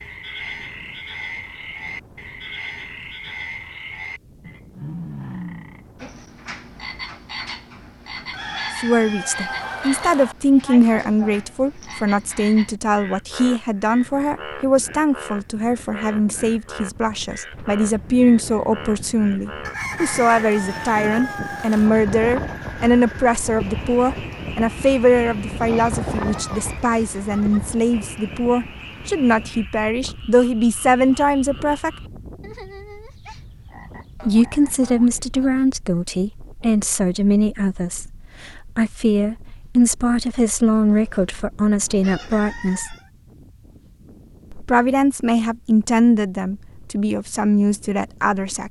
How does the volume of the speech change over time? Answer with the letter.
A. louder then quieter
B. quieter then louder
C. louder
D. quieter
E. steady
E.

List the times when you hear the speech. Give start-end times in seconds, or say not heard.
8.7-31.9, 34.1-43.0, 44.5-48.6.